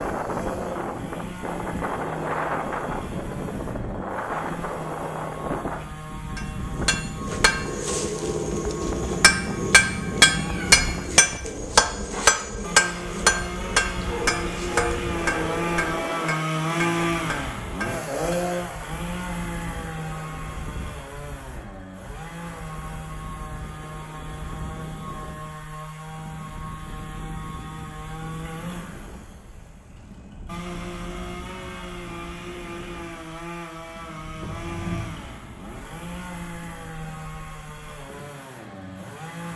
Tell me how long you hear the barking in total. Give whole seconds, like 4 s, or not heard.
2 s.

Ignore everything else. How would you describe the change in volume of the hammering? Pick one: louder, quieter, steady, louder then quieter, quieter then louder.
louder then quieter.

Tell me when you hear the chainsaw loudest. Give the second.
17 s.